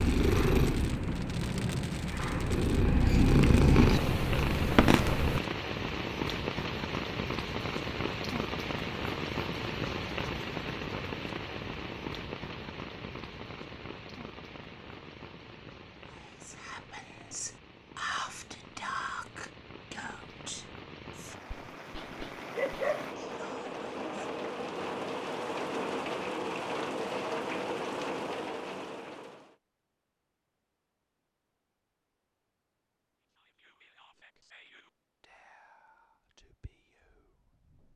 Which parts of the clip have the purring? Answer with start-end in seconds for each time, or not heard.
0.0-5.4.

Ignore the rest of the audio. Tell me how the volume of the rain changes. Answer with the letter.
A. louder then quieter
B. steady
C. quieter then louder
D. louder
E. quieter
C.